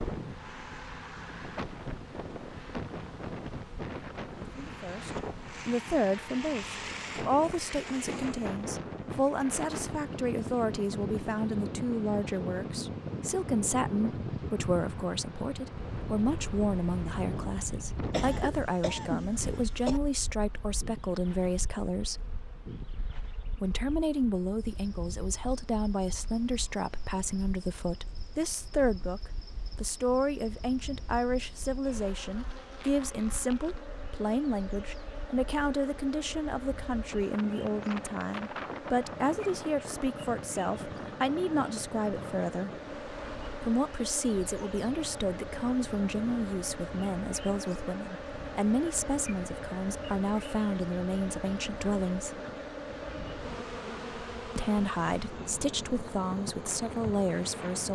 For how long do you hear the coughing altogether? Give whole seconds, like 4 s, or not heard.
2 s.